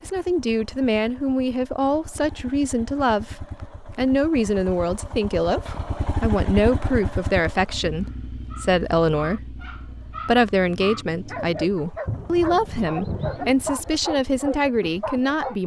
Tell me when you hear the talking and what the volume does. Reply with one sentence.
You can hear the talking from 0.0 to 5.6 s, at a steady volume; and from 6.2 to 15.6 s, at a steady volume.